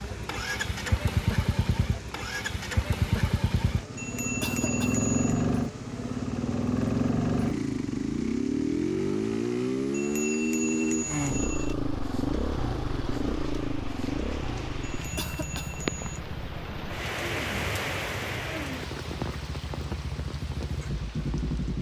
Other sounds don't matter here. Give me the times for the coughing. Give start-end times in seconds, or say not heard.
4.4-5.0, 15.2-15.8.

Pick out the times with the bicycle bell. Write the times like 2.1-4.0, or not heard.
4.0-5.5, 9.9-11.8, 14.9-16.2.